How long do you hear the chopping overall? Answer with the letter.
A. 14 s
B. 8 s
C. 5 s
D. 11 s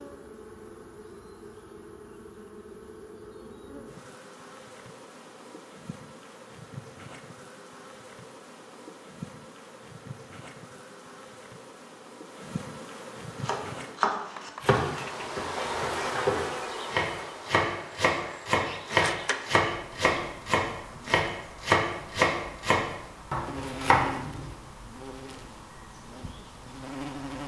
D.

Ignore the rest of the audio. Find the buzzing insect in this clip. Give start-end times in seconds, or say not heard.
0.0-27.4.